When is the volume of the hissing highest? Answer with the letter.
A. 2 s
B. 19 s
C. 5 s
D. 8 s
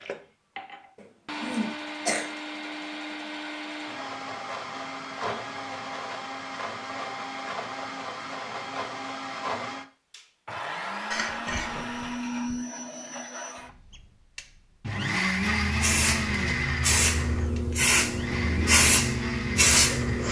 B.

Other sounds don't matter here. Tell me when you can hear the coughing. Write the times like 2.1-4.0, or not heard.
0.9-2.3, 11.1-12.6.